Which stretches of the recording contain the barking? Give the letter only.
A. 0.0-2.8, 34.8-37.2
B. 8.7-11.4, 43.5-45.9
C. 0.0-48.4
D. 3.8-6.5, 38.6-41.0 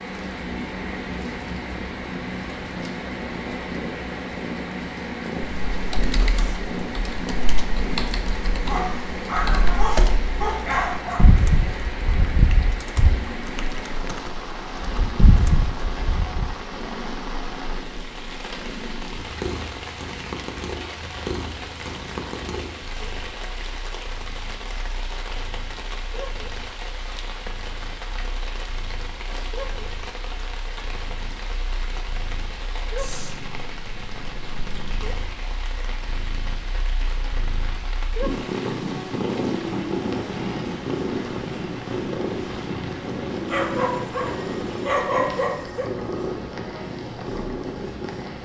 B.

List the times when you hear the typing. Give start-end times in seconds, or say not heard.
5.6-16.6.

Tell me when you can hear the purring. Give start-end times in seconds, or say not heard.
0.0-48.4.